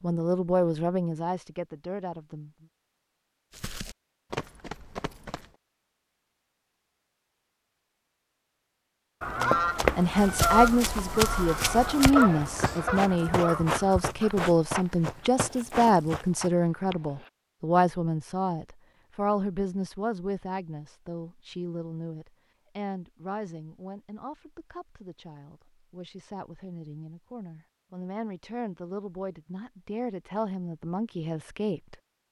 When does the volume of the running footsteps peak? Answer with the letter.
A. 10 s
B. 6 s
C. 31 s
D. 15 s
A.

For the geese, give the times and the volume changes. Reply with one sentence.
The geese can be heard from 9.2 to 17.3 s, getting quieter.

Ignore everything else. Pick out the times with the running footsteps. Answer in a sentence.
The running footsteps can be heard from 3.5 to 5.5 s and from 9.4 to 16.5 s.